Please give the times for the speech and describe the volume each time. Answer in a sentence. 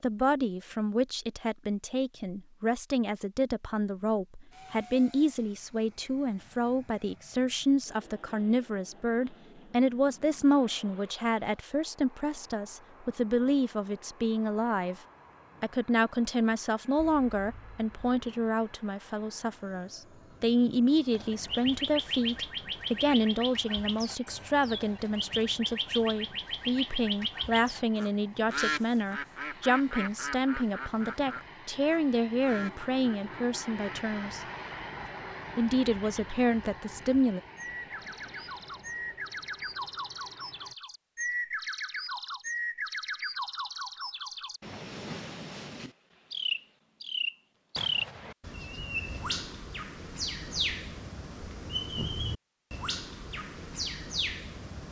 The speech can be heard from 0.0 to 15.0 s, at a steady volume; from 15.6 to 34.4 s, at a steady volume; and briefly from 35.5 to 37.4 s.